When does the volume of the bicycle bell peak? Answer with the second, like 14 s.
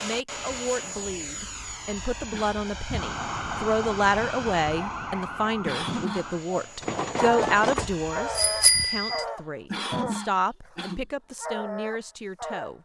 9 s.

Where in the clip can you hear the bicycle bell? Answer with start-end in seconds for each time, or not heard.
6.8-9.2.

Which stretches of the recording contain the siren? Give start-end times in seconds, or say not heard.
2.9-6.5.